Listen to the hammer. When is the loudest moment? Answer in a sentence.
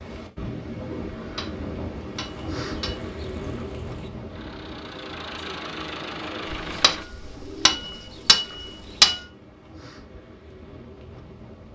The loudest moment of the hammer is at 9 seconds.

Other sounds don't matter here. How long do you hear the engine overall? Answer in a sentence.
The engine can be heard for 3 seconds in total.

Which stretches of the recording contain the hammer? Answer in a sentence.
The hammer can be heard from 1.1 to 3.0 s and from 6.5 to 9.2 s.